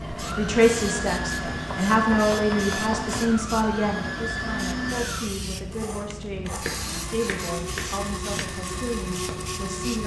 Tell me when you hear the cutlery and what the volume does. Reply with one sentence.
You can't hear the cutlery here.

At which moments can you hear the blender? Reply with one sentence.
You can hear the blender from 0.0 to 10.0 s.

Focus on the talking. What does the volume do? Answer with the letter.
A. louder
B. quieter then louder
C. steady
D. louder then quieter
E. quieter
E.